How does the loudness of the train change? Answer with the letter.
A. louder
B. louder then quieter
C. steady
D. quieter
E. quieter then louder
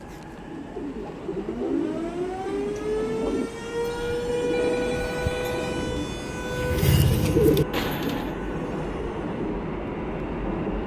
A.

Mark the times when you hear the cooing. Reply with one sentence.
You can hear the cooing from 0.6 to 8.3 s.